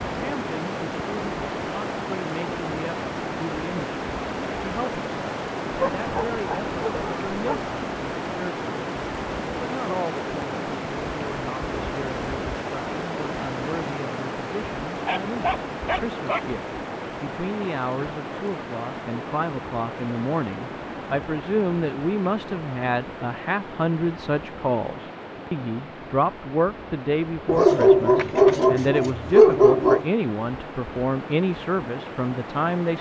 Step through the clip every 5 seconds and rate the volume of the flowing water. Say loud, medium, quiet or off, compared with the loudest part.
loud, loud, loud, loud, medium, medium, medium.